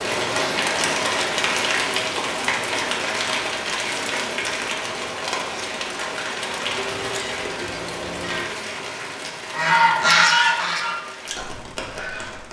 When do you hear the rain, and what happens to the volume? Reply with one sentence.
You can hear the rain from 0.0 to 12.4 s, getting quieter.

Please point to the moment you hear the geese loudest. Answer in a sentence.
The loudest moment of the geese is at 10 seconds.